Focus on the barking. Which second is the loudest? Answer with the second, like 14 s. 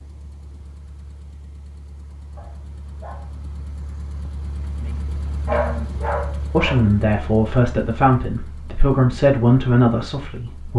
6 s.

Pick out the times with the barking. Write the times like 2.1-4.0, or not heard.
2.4-3.3, 5.5-6.9.